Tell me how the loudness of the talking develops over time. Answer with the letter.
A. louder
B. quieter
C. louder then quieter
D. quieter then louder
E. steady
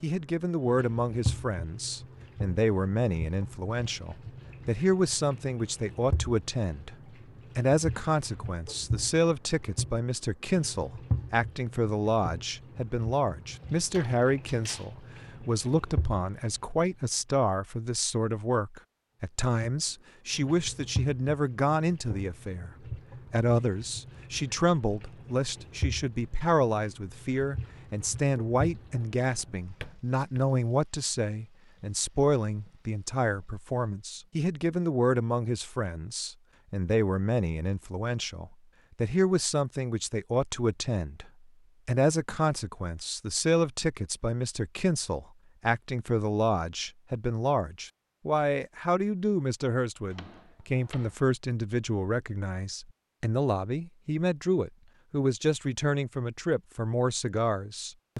E.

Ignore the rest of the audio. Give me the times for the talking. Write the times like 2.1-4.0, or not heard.
0.0-7.0, 7.5-58.1.